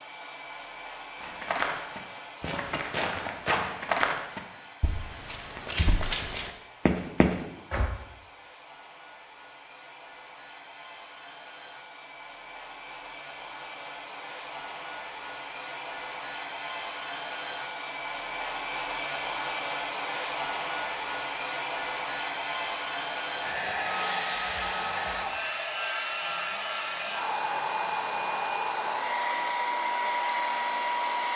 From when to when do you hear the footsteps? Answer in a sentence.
You can hear the footsteps from 1.2 to 7.9 s.